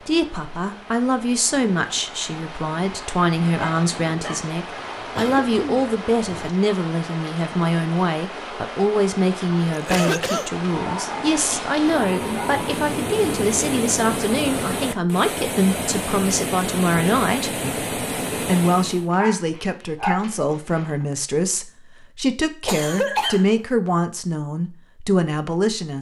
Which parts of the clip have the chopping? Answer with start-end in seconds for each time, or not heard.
not heard.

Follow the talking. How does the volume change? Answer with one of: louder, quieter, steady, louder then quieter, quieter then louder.
steady.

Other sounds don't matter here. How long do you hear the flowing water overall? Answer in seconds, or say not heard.
19 s.